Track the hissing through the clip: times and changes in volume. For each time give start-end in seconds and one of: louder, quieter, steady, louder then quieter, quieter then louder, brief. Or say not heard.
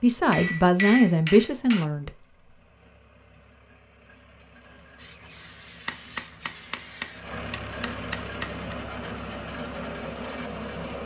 5.0-11.0 quieter.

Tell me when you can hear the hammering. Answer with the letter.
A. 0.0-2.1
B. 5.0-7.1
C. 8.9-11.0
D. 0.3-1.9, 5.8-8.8
D.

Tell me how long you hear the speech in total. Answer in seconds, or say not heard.
2 s.